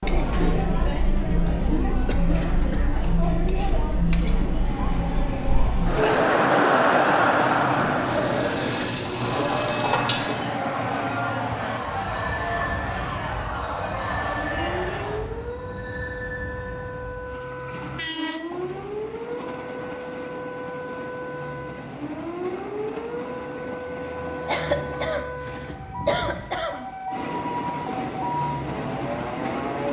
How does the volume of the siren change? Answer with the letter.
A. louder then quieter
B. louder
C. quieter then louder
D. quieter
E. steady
E.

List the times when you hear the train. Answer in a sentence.
You can hear the train from 4.4 to 29.8 s.